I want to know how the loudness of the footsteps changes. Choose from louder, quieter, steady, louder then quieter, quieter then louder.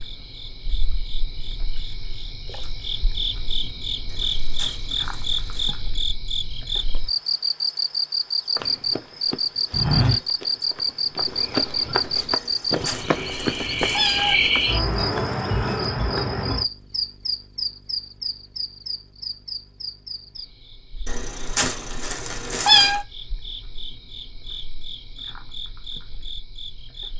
quieter.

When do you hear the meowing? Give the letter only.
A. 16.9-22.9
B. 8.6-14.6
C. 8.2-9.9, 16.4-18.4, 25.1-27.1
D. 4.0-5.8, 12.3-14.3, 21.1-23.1
D.